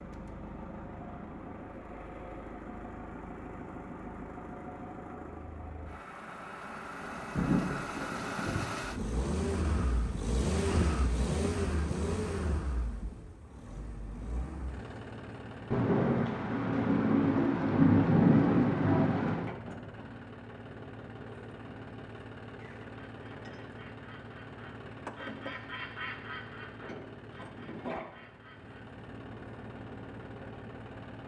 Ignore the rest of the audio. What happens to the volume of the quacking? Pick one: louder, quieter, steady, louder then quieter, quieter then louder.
louder then quieter.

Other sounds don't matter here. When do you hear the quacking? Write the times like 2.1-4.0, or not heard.
22.6-28.9.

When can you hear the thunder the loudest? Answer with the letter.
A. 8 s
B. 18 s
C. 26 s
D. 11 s
B.